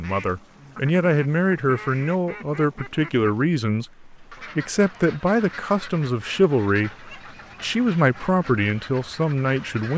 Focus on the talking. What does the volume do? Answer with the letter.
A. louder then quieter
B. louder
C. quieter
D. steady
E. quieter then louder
D.